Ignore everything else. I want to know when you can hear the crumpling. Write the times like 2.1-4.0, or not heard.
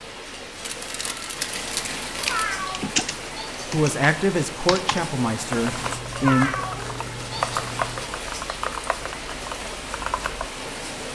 0.6-2.5, 5.8-8.1.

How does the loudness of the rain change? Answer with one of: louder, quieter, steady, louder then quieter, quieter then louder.
steady.